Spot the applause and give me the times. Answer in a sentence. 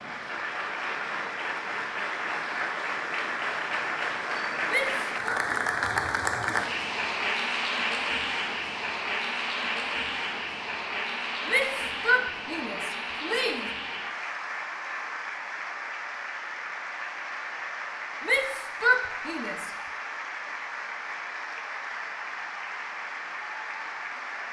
The applause can be heard from 0.0 to 24.4 s.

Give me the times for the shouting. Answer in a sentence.
You can hear the shouting from 4.7 to 5.4 s, from 11.4 to 13.7 s and from 18.2 to 19.7 s.